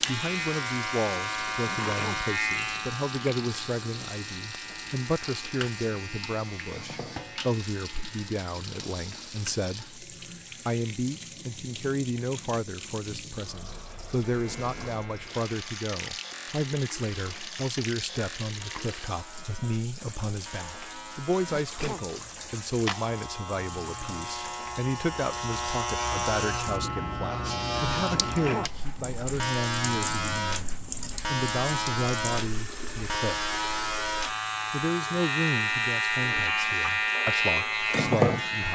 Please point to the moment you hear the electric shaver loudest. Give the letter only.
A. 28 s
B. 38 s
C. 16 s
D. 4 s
B.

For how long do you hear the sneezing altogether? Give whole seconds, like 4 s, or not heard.
2 s.